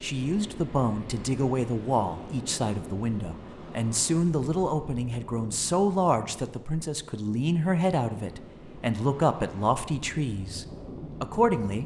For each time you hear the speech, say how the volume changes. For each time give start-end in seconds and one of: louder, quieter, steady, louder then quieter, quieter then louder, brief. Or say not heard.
0.0-11.8 steady.